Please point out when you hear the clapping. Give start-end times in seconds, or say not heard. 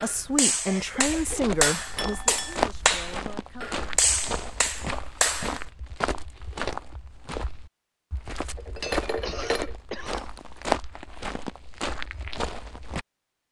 0.0-5.7.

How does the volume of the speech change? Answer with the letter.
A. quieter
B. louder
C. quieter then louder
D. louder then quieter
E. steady
A.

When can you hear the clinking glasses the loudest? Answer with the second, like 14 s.
9 s.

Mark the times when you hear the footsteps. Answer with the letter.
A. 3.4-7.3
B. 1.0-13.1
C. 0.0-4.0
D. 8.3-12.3
B.